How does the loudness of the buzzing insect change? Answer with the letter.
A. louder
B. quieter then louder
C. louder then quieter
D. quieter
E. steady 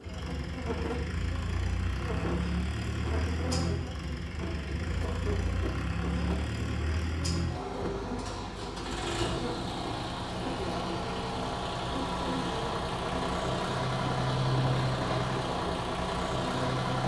E.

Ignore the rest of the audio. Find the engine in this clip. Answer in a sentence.
You can hear the engine from 0.0 to 17.0 s.